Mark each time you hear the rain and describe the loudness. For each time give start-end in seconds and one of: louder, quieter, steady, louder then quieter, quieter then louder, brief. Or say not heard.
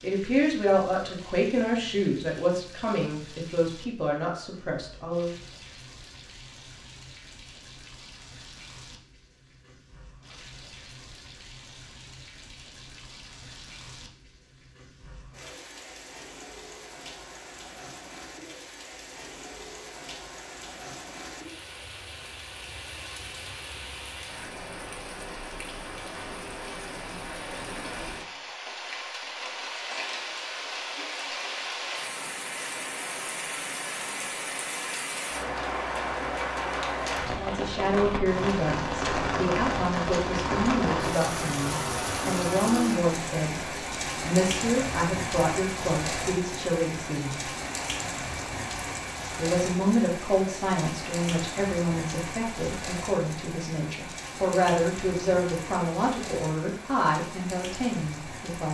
0.0-58.6 louder then quieter.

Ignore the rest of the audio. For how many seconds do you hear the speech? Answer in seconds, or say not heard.
25 s.